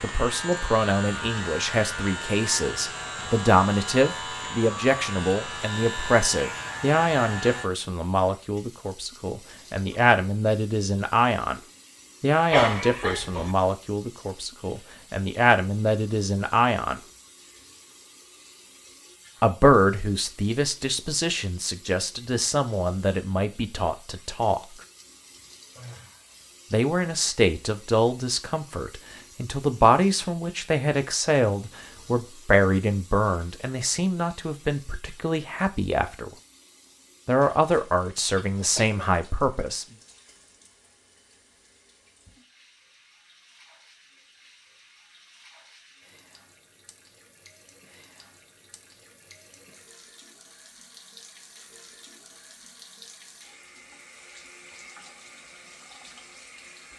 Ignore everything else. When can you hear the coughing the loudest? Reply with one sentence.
The volume of the coughing peaks at 13 seconds.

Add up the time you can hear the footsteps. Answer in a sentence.
The footsteps can't be heard in this clip.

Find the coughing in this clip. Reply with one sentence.
The coughing can be heard from 12.5 to 13.6 s and from 38.3 to 39.0 s.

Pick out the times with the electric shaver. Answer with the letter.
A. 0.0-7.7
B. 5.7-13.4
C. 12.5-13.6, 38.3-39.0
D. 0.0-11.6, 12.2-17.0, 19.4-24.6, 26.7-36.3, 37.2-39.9
A.